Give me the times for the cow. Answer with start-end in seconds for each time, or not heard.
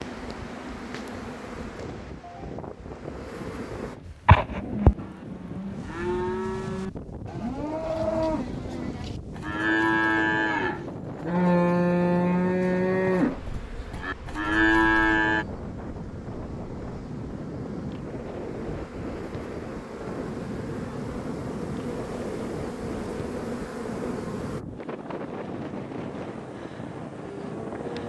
4.0-15.4.